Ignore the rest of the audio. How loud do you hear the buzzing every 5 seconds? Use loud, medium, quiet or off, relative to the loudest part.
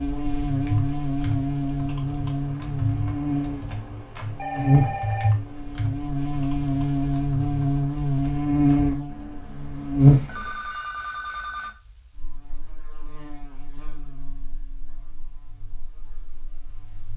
loud, loud, loud, quiet.